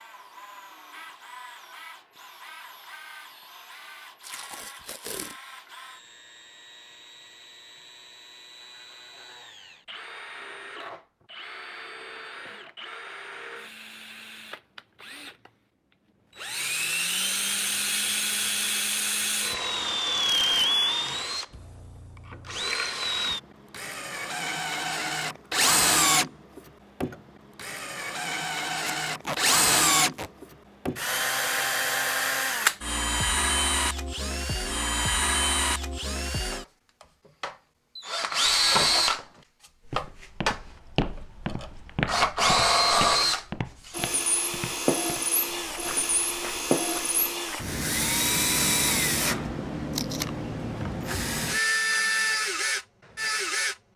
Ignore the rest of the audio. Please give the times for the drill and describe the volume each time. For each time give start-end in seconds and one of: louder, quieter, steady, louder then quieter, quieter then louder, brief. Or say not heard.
0.0-53.8 louder.